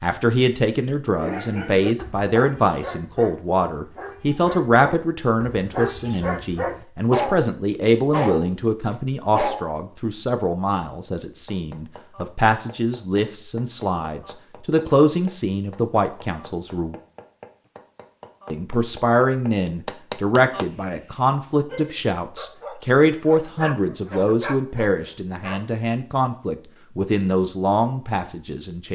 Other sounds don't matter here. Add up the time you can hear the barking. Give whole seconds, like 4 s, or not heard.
13 s.